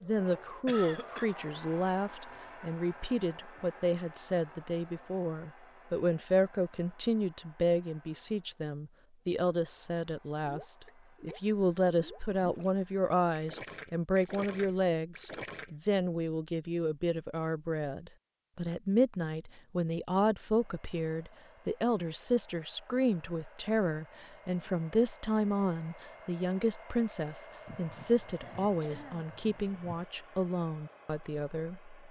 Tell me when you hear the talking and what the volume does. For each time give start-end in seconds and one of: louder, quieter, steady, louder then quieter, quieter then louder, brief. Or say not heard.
0.0-31.9 steady.